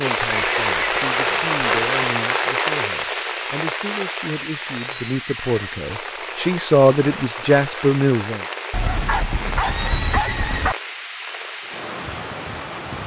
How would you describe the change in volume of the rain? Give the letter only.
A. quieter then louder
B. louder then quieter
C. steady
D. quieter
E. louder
D.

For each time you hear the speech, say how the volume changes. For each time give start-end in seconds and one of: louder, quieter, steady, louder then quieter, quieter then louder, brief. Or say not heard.
0.0-8.4 louder.